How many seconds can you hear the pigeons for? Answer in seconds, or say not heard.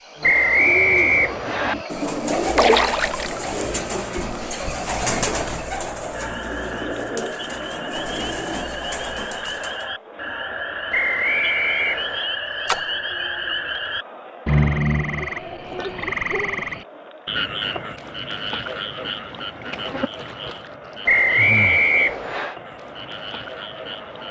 10 s.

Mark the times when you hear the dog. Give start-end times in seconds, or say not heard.
not heard.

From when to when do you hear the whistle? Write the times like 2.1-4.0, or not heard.
0.2-1.8, 10.9-12.3, 21.1-22.6.